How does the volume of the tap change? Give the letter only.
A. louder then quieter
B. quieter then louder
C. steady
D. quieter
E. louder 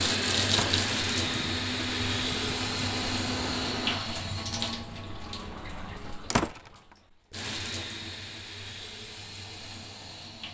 D.